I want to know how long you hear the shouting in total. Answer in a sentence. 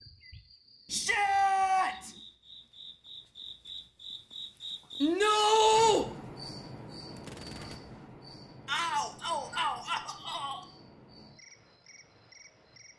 You can hear the shouting for 4 seconds altogether.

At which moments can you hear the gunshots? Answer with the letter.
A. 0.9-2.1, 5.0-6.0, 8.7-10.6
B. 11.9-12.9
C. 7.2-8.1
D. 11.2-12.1
C.